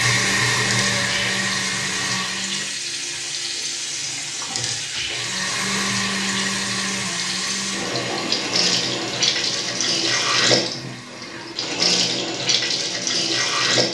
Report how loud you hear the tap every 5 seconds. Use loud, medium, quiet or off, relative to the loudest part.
medium, loud, loud.